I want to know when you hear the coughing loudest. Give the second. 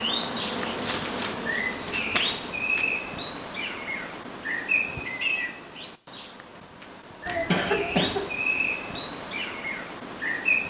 8 s.